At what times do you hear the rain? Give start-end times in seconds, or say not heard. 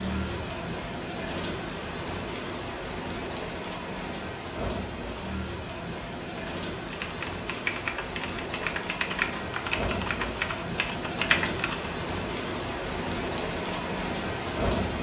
0.0-14.9.